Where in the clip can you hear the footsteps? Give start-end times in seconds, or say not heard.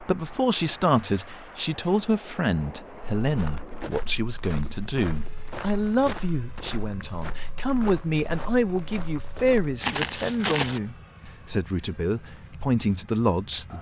3.2-10.8.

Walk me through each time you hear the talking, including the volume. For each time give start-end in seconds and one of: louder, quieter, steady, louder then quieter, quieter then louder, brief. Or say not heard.
0.0-13.7 steady.